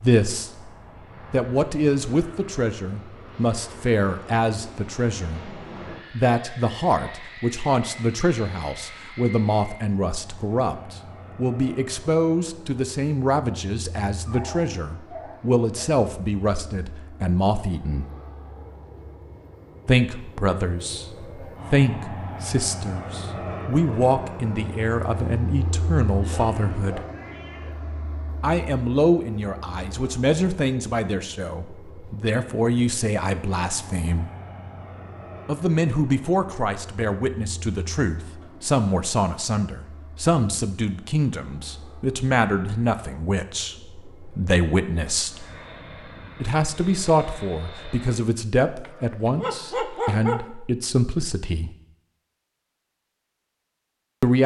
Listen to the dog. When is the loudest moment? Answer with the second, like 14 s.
50 s.